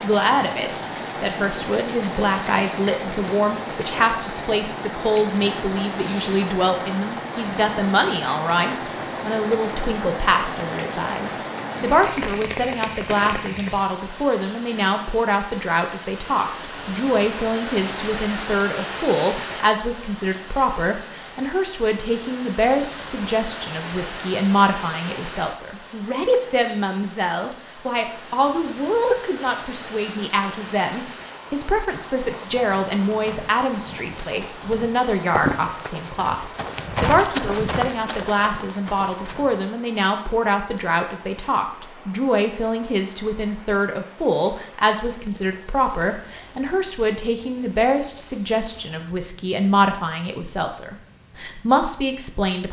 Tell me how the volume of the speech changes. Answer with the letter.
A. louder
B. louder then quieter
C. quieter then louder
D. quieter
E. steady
E.